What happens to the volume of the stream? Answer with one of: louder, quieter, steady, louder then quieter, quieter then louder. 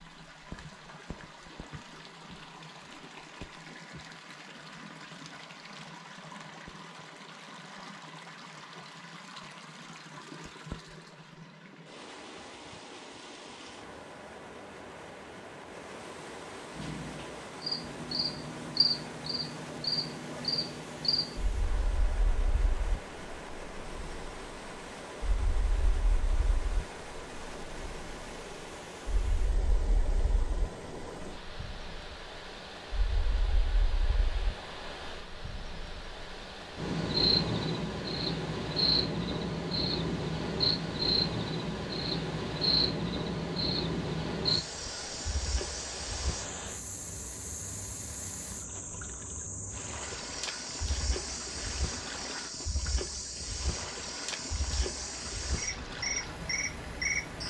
steady.